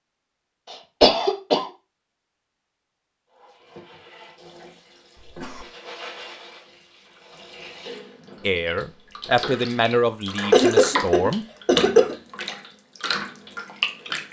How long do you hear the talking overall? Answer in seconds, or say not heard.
3 s.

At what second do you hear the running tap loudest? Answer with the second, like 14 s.
11 s.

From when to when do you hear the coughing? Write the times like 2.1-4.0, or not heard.
0.7-1.6, 5.2-5.7, 10.5-12.2.